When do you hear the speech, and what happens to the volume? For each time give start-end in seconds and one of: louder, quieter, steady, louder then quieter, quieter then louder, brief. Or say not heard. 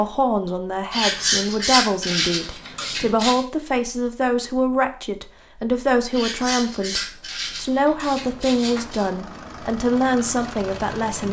0.0-11.2 steady.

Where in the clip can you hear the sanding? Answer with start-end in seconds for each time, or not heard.
0.9-3.4, 6.1-9.1.